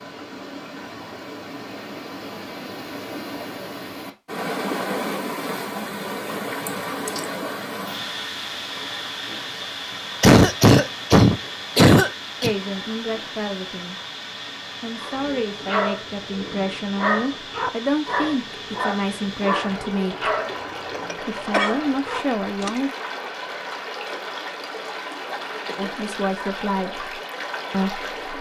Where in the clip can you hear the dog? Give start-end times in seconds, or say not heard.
14.9-22.8.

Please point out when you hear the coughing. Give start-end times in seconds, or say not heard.
6.7-7.3, 10.2-12.6, 20.4-21.9.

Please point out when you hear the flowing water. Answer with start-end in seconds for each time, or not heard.
0.0-28.3.